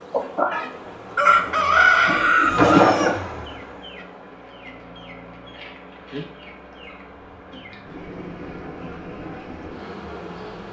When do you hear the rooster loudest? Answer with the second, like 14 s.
2 s.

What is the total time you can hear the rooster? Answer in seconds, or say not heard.
2 s.